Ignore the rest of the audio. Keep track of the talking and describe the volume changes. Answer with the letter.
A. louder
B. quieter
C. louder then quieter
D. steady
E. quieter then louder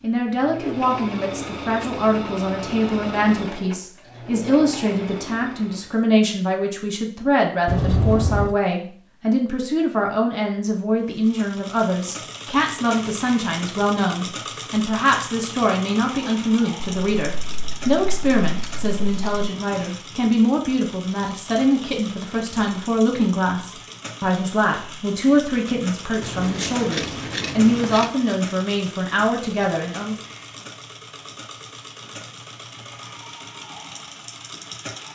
D.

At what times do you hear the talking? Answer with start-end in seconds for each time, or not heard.
0.0-30.1.